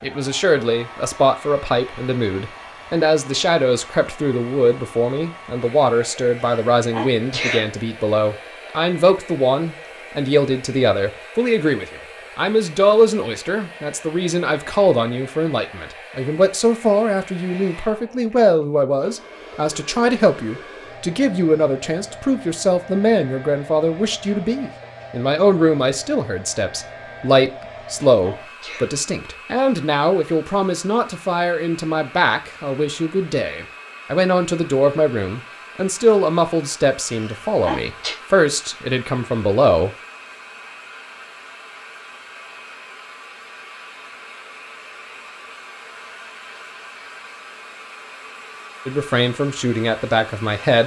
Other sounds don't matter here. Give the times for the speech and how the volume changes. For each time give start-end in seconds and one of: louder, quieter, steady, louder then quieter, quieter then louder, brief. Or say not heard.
0.0-39.9 steady
48.9-50.8 brief.